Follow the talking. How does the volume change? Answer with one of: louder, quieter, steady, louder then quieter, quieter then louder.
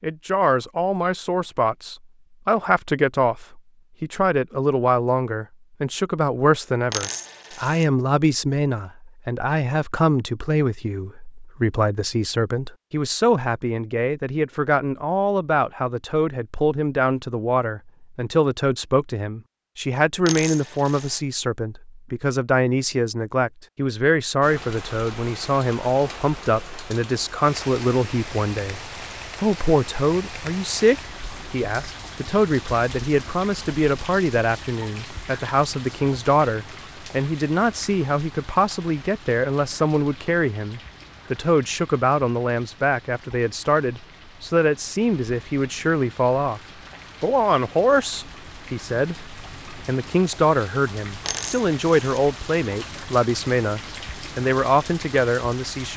steady.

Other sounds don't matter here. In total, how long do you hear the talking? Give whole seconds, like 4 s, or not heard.
55 s.